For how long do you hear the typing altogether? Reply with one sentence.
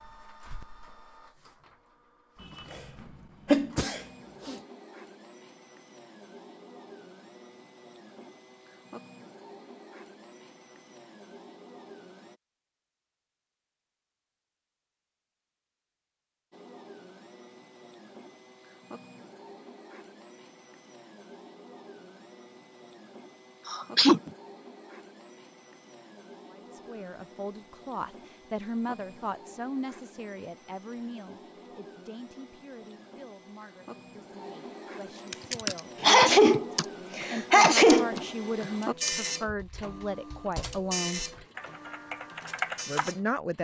The typing can be heard for 8 seconds in total.